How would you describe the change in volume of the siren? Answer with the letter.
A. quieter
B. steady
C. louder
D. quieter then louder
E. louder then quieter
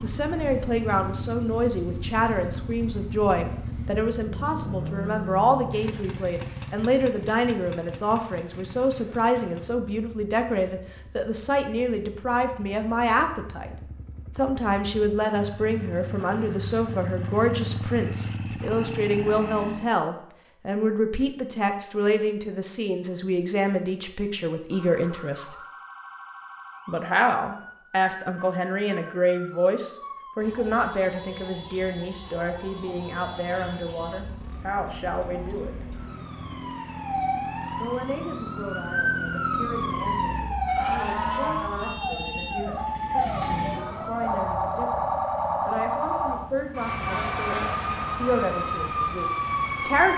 C.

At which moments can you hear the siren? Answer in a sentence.
You can hear the siren from 24.7 to 50.1 s.